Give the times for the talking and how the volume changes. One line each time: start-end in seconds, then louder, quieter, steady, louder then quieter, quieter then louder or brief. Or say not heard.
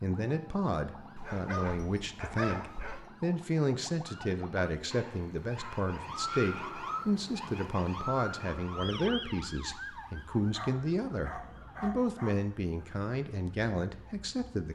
0.0-14.6 steady.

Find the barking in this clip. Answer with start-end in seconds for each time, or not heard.
1.1-3.0, 4.9-6.7, 10.5-12.9.